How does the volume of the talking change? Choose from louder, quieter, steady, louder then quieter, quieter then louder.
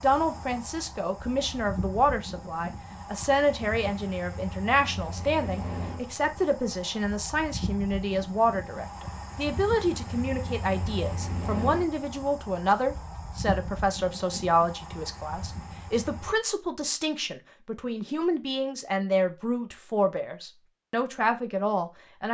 steady.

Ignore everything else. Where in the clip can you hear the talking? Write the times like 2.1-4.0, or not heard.
0.0-22.2.